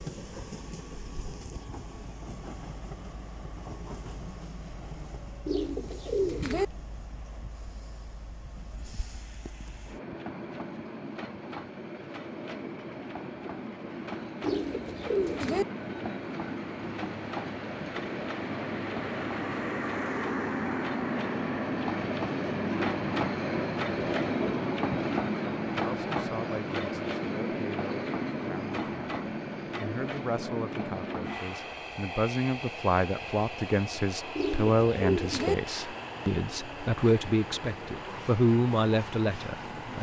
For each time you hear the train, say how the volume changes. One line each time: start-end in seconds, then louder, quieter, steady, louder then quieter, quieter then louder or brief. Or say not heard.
0.0-39.9 louder then quieter.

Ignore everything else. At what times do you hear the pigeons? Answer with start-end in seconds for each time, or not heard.
5.5-6.7, 14.4-15.7, 34.4-35.5.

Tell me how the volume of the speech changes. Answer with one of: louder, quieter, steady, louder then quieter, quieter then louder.
louder.